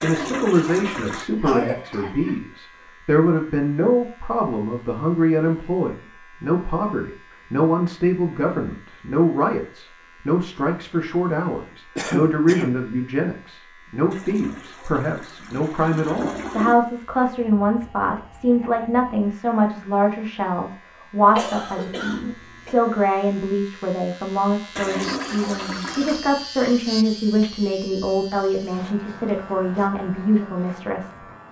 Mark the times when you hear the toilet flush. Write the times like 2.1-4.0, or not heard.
0.0-1.2, 14.1-16.8, 24.8-26.2.